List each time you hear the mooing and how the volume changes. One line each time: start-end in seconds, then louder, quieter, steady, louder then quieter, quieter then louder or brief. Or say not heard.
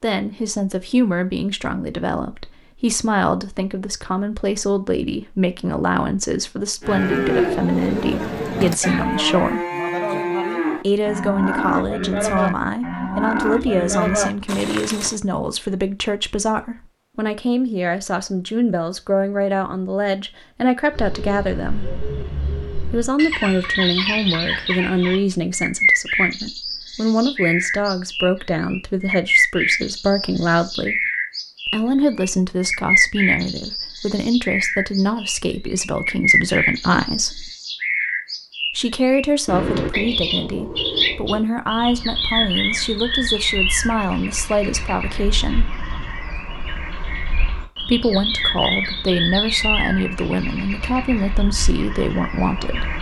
6.8-15.2 steady.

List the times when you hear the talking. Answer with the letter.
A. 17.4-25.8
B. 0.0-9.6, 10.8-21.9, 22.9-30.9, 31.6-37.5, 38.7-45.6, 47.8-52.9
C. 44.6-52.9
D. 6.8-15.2
B.